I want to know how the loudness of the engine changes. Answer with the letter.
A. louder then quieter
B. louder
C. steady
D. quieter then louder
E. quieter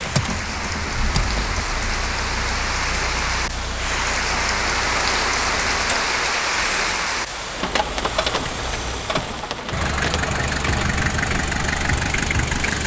D.